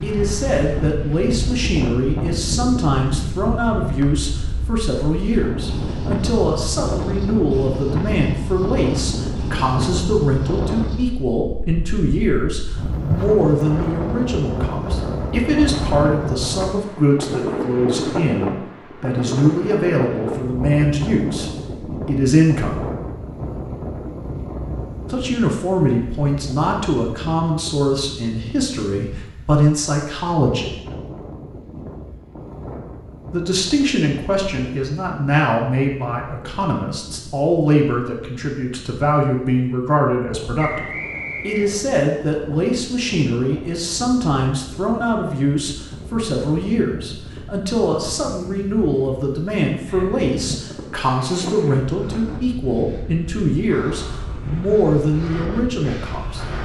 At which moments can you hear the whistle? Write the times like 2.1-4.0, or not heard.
40.5-41.8.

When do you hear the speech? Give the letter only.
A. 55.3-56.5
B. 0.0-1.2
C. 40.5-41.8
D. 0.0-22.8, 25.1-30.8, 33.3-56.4
D.